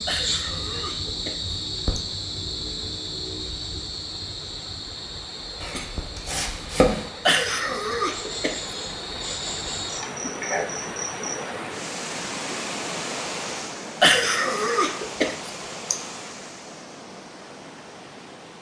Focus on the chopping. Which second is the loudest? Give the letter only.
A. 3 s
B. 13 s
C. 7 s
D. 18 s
C.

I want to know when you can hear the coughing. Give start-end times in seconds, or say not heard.
0.1-2.0, 7.2-8.8, 14.0-15.9.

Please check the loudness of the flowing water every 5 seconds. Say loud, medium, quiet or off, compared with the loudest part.
quiet, medium, loud, medium.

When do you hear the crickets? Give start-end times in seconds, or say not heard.
0.0-11.4.